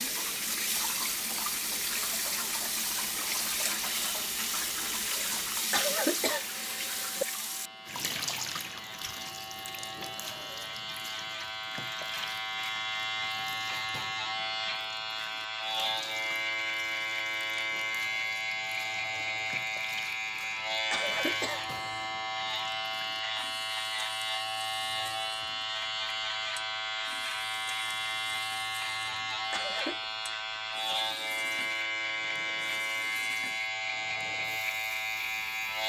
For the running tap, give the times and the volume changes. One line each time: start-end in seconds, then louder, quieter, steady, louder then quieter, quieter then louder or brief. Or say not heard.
0.0-35.8 quieter.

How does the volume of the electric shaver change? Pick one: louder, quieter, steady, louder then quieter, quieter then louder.
louder.